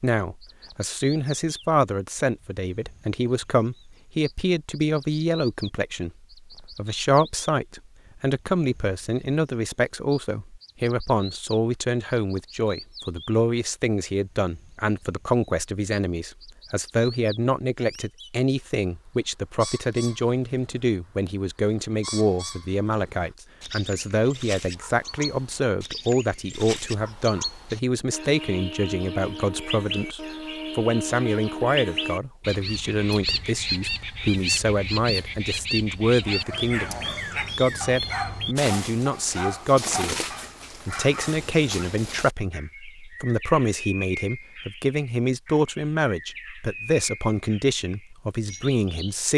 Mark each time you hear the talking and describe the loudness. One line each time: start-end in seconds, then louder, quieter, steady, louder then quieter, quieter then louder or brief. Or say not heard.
0.0-37.0 steady
37.5-49.3 steady.